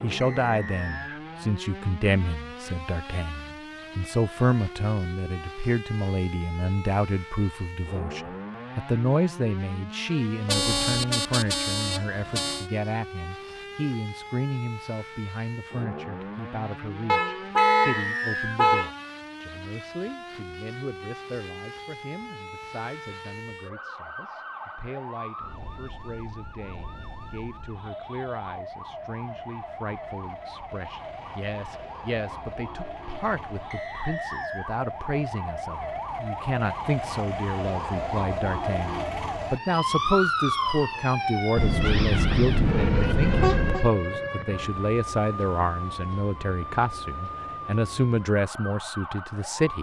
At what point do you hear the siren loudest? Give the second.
40 s.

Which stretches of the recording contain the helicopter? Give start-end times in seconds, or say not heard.
not heard.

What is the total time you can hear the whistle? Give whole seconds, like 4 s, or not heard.
3 s.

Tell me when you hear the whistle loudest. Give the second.
18 s.